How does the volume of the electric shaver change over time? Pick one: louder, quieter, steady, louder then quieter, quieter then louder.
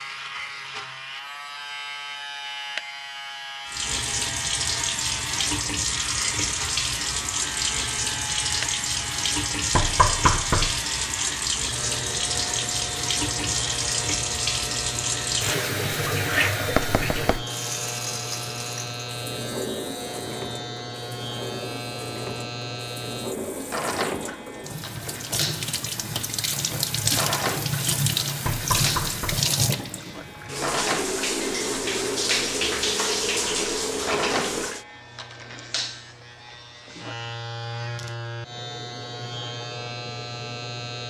steady.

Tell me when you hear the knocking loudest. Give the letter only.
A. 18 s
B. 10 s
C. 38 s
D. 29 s
B.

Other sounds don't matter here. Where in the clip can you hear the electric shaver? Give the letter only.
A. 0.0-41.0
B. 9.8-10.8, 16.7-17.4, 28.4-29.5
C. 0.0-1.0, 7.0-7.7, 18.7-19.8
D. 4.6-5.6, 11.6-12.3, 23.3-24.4
A.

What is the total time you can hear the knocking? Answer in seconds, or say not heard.
3 s.